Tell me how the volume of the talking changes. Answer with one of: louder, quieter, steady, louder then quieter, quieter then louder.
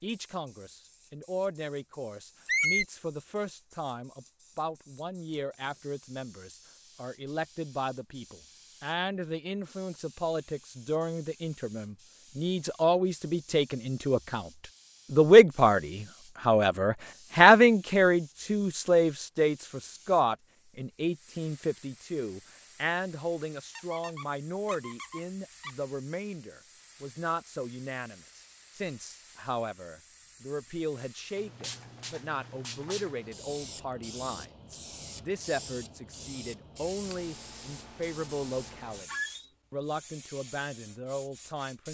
louder then quieter.